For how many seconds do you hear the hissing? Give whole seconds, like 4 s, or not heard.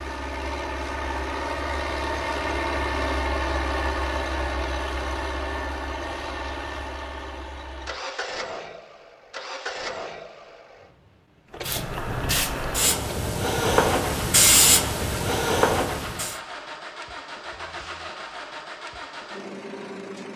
5 s.